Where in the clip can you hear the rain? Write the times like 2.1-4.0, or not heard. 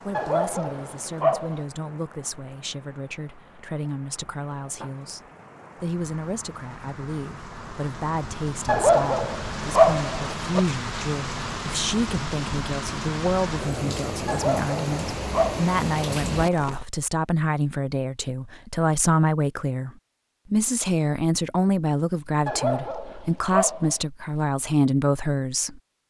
0.0-16.9.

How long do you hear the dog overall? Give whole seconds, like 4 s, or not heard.
6 s.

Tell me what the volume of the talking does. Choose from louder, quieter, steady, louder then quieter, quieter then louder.
louder.